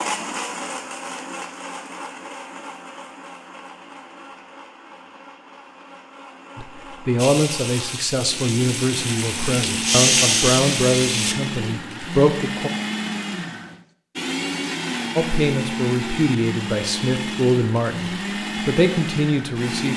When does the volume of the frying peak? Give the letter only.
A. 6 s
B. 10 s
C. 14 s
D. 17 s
B.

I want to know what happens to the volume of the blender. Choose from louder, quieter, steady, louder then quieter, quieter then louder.
quieter then louder.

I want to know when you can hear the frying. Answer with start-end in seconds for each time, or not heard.
7.2-11.3.